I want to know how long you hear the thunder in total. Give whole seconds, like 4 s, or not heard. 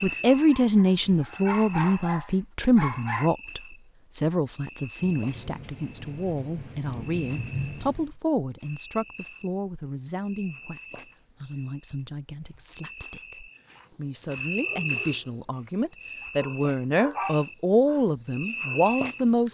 3 s.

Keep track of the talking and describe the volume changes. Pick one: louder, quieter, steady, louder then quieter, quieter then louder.
quieter then louder.